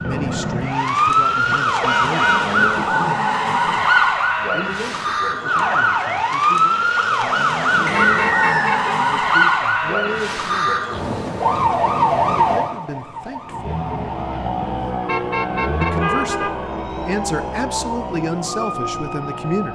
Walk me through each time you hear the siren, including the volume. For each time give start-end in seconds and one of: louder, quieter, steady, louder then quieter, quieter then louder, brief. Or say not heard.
0.0-19.7 quieter.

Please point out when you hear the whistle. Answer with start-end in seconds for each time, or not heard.
7.8-8.8.